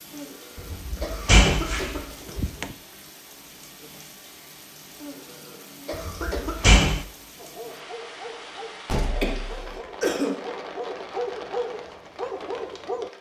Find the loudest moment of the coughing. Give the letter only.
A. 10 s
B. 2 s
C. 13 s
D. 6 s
A.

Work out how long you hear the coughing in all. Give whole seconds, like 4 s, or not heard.
5 s.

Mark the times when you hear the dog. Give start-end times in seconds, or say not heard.
7.3-13.1.